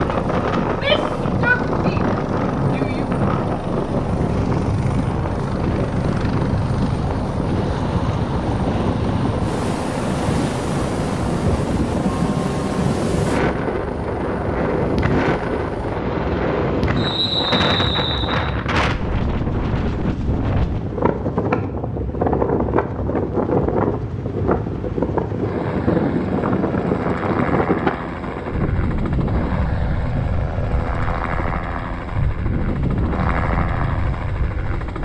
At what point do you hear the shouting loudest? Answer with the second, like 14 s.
1 s.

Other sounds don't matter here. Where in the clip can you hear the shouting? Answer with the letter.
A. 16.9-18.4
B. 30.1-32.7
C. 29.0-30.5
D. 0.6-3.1
D.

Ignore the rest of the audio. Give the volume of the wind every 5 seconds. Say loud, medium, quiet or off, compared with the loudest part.
loud, loud, loud, loud, loud, loud, medium.